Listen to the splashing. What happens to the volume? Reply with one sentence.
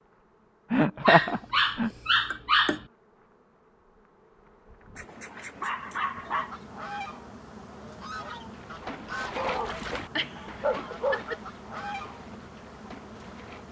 The volume of the splashing goes down.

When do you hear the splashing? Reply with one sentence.
You can hear the splashing from 8.4 to 13.6 s.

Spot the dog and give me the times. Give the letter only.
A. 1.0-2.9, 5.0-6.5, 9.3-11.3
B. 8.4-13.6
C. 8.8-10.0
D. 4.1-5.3
A.